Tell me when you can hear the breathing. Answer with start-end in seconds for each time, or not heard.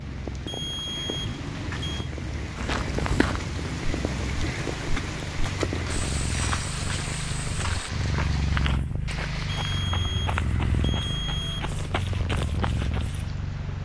not heard.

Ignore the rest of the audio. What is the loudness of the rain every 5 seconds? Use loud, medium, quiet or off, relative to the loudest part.
loud, loud, medium.